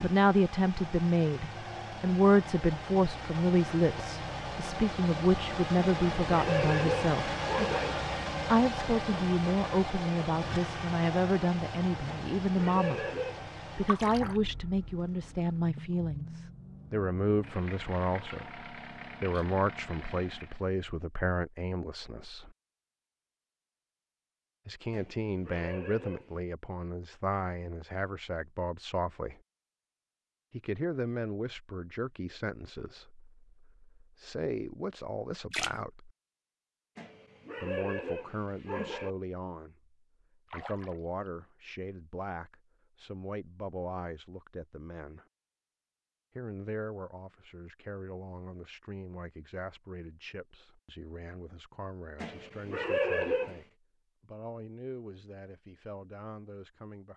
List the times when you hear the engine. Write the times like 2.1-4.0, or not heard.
0.0-20.7.